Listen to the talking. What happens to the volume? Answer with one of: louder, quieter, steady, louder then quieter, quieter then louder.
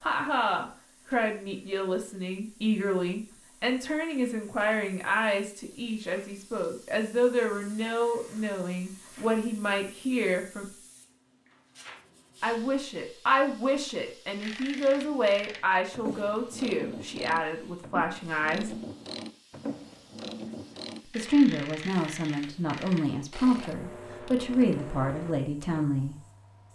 steady.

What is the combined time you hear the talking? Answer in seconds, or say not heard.
22 s.